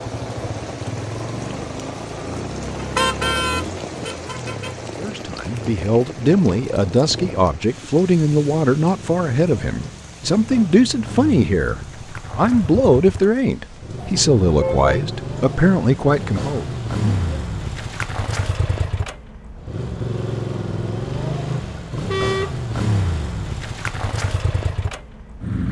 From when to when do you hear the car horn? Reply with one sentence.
The car horn can be heard from 3.0 to 4.7 s, from 14.0 to 15.0 s and from 22.1 to 22.6 s.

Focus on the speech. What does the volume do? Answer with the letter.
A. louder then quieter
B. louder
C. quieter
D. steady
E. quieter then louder
D.